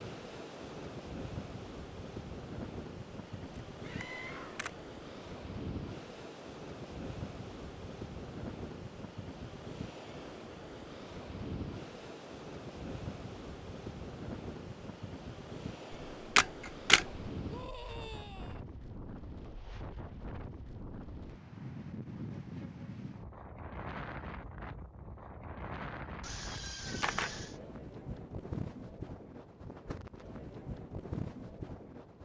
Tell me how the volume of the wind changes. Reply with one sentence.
The loudness of the wind stays about the same.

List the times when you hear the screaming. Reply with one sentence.
You can hear the screaming from 3.8 to 4.7 s, from 17.4 to 18.6 s and from 26.2 to 27.6 s.